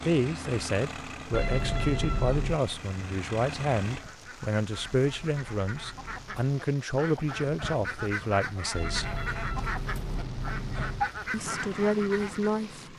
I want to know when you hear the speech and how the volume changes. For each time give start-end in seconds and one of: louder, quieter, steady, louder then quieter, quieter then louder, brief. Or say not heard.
0.0-9.2 steady
11.3-12.8 brief.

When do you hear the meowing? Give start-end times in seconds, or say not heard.
1.3-2.6, 4.7-6.3, 8.8-11.1.